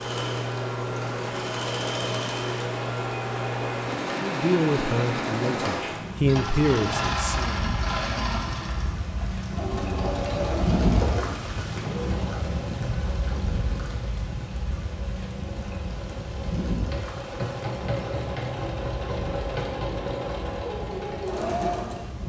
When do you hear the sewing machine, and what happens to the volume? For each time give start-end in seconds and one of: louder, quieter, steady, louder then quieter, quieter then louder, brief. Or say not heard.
0.0-22.2 quieter then louder.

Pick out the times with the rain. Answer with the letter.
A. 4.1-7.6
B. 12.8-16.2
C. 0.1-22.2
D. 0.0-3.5
C.